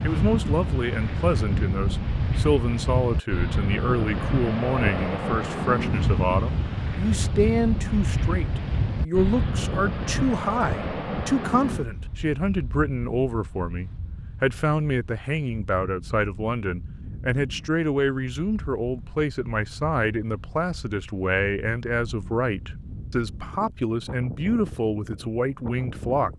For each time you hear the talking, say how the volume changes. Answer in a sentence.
The talking can be heard from 0.0 to 26.3 s, at a steady volume.